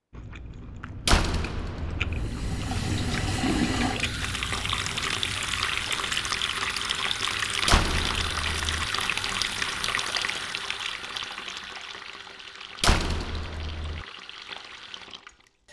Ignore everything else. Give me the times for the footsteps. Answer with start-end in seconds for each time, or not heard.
not heard.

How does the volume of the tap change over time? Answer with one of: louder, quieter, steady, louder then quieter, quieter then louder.
quieter.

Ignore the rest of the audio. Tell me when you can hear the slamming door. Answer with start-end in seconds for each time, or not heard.
1.1-2.2, 7.7-8.9, 12.8-14.1.